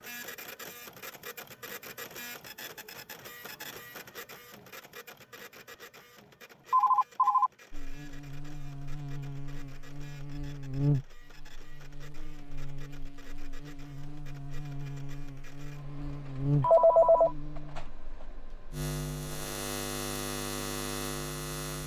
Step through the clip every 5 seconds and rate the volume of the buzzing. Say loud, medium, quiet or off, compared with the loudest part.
off, medium, loud, loud, loud.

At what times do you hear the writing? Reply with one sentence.
The writing can't be heard in this clip.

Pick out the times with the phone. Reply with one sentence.
You can hear the phone from 6.7 to 7.5 s and from 16.6 to 17.3 s.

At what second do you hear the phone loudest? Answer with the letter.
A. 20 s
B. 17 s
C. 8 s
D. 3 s
B.